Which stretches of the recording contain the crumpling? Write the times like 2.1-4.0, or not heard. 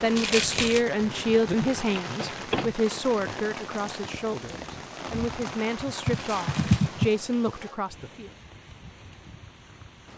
0.1-0.8, 6.1-7.0.